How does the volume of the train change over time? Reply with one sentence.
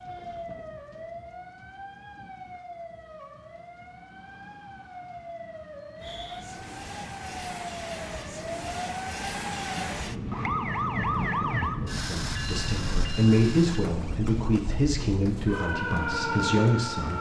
The volume of the train goes up, then down.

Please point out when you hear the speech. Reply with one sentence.
You can hear the speech from 11.9 to 17.1 s.